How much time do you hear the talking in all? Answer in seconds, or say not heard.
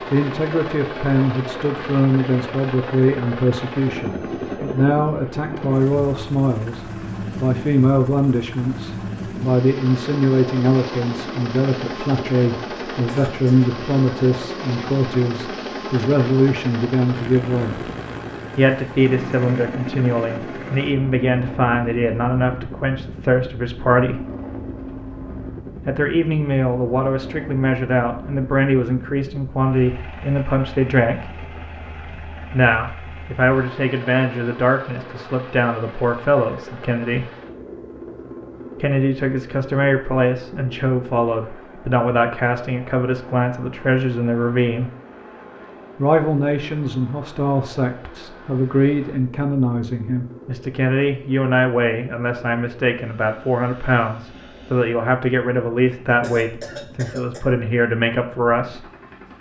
53 s.